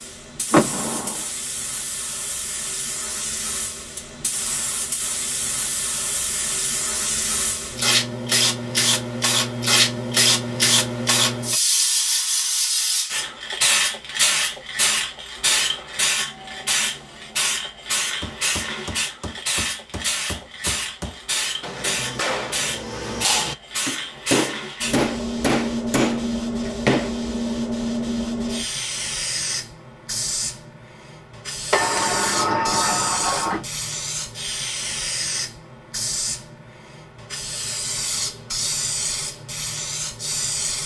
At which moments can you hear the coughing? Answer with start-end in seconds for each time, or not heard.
not heard.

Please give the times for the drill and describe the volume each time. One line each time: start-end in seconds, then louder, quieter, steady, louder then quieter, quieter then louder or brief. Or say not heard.
not heard.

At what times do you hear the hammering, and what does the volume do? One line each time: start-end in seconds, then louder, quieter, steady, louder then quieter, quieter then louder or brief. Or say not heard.
18.2-27.1 louder.